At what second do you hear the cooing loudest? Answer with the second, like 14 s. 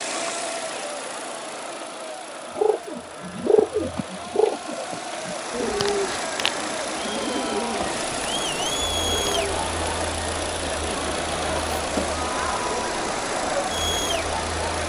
4 s.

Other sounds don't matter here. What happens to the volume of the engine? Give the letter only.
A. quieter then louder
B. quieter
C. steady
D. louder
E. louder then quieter
D.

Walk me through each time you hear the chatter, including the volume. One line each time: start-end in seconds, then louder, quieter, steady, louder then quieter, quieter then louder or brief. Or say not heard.
0.0-14.8 louder.